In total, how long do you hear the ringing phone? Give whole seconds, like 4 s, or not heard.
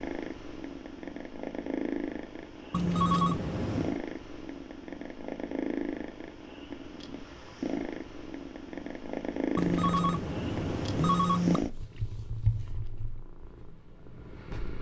3 s.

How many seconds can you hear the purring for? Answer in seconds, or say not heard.
15 s.